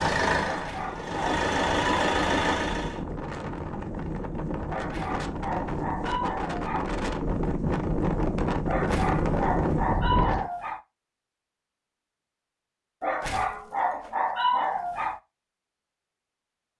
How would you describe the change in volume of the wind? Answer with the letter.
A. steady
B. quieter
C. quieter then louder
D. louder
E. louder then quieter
D.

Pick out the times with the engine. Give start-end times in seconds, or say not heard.
0.0-3.0.